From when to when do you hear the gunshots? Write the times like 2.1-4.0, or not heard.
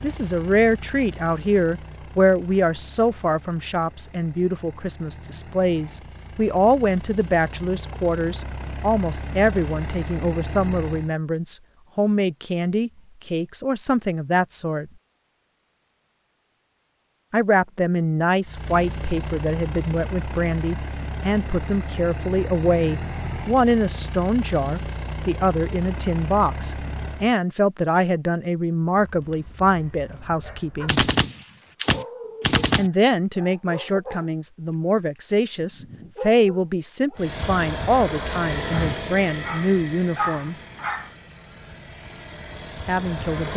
30.9-32.9.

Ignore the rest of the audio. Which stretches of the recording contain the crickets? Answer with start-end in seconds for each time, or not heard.
not heard.